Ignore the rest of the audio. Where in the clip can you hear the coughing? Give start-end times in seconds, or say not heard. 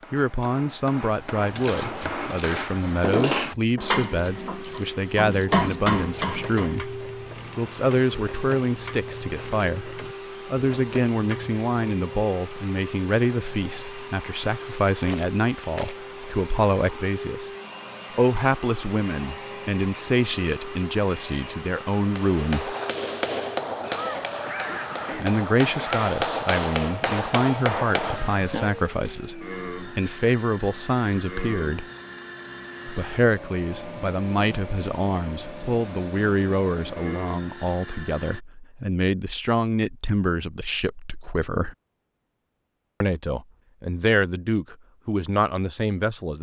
23.8-26.1.